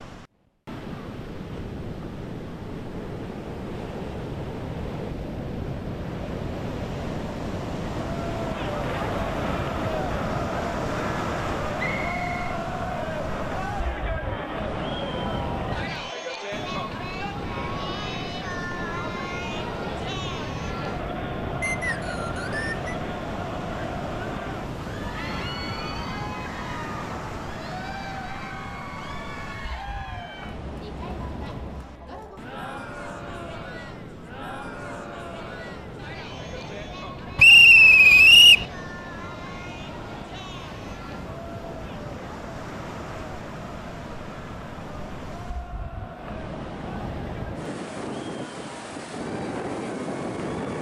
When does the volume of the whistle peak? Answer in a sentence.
The loudest moment of the whistle is at 38 seconds.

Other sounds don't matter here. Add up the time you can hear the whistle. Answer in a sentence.
The whistle can be heard for 3 seconds in total.